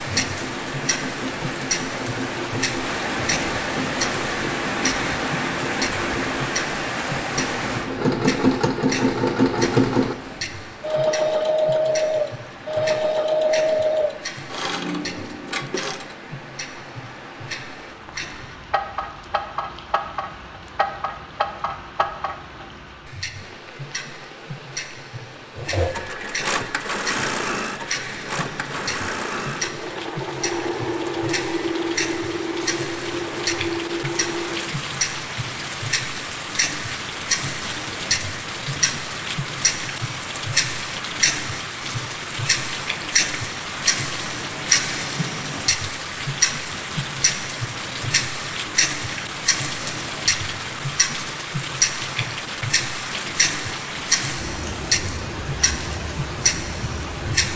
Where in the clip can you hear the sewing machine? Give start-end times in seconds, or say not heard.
0.0-16.1, 25.6-34.8.